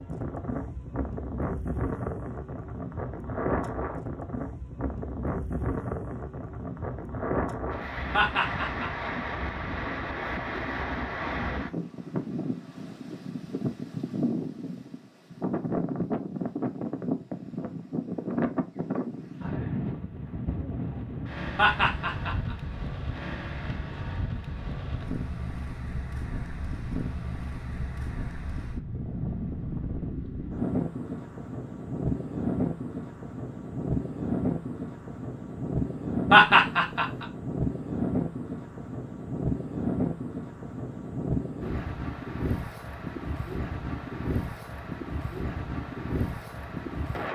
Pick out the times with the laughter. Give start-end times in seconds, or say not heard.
8.1-8.9, 21.6-22.4, 36.3-37.2.